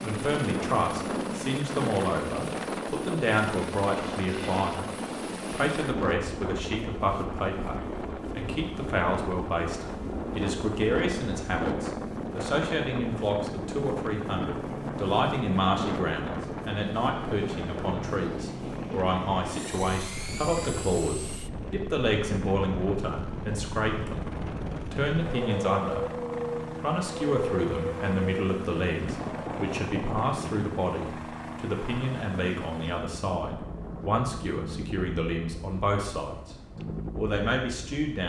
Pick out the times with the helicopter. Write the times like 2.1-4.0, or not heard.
0.0-38.2.